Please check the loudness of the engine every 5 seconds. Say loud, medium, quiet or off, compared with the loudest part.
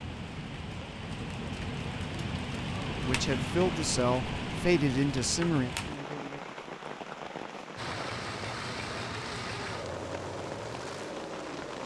off, loud, loud.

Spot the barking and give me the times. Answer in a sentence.
The barking can't be heard in this clip.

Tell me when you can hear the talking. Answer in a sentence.
You can hear the talking from 3.0 to 5.7 s.